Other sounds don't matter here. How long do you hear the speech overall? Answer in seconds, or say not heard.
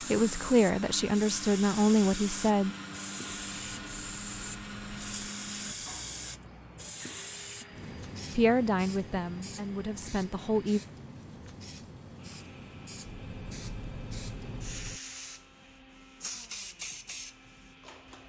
5 s.